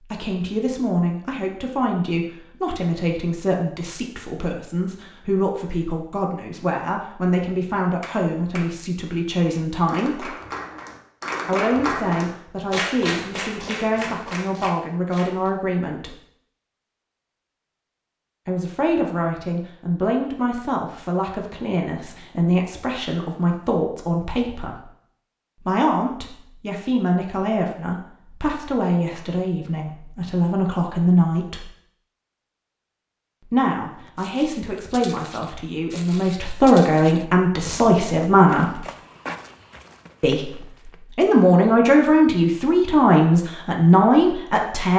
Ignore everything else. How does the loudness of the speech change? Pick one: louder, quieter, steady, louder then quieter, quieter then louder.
louder.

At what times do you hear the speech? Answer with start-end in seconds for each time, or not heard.
0.1-10.3, 11.4-16.1, 18.4-24.8, 25.6-31.6, 33.5-38.8, 40.2-44.9.